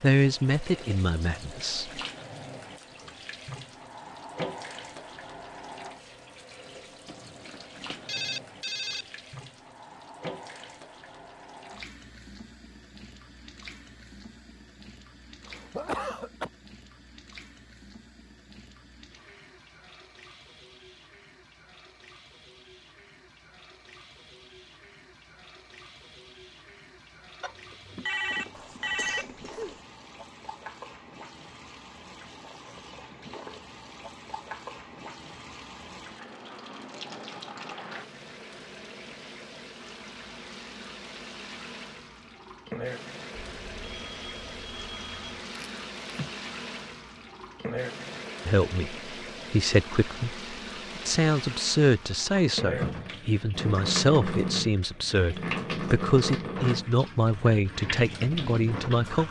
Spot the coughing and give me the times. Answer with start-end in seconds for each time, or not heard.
15.4-16.5, 28.6-29.8, 45.5-46.4.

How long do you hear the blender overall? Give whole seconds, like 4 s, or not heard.
not heard.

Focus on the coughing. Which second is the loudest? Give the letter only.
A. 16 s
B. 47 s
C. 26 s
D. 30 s
A.